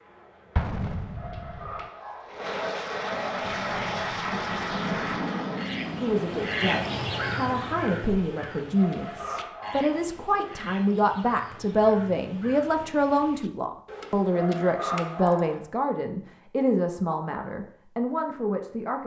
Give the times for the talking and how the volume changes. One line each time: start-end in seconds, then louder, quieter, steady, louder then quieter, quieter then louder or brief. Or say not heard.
6.0-19.0 steady.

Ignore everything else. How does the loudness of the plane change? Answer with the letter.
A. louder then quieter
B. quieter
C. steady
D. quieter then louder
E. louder
E.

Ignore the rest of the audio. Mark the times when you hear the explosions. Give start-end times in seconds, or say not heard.
0.6-1.9.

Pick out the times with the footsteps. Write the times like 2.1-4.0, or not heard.
not heard.